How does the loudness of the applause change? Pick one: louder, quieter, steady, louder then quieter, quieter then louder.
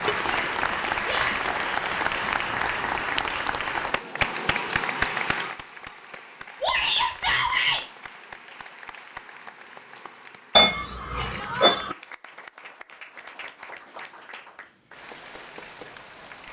quieter.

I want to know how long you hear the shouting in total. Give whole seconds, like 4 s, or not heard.
3 s.